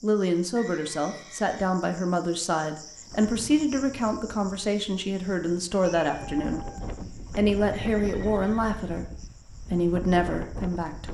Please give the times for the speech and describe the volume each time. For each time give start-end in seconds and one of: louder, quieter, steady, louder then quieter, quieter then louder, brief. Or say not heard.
0.0-11.1 steady.